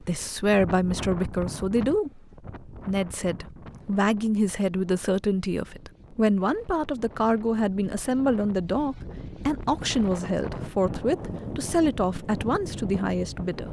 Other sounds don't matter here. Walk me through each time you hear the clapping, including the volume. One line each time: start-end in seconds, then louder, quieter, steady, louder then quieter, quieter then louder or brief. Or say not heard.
not heard.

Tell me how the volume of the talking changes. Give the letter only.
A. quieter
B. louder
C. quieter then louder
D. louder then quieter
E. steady
E.